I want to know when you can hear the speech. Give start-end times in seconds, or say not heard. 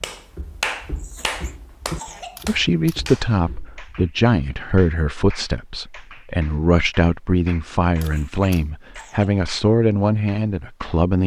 2.5-11.2.